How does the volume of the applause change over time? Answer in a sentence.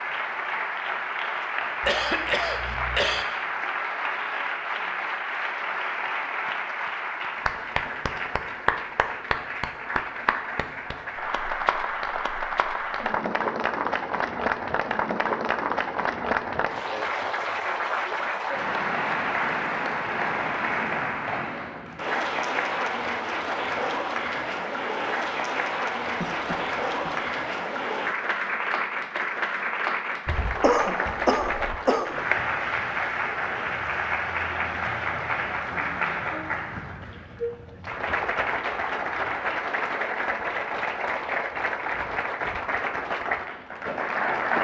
The volume of the applause stays about the same.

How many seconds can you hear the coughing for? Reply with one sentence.
You can hear the coughing for 4 seconds altogether.